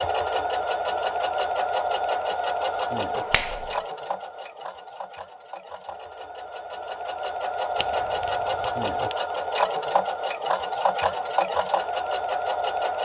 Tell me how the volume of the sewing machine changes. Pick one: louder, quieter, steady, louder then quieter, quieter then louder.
quieter then louder.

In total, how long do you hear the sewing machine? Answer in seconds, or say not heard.
13 s.